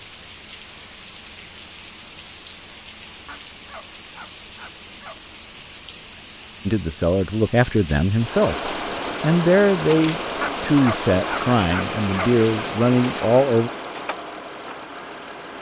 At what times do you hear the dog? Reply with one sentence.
You can hear the dog from 3.2 to 5.2 s and from 10.4 to 12.3 s.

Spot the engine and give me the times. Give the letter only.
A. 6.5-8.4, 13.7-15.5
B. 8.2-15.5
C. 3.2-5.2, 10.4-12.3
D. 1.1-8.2
B.